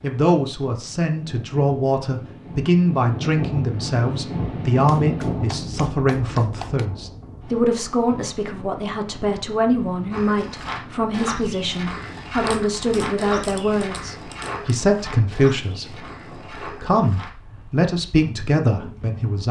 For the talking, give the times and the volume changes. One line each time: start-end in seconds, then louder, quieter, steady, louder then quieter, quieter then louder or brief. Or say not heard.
0.0-19.4 steady.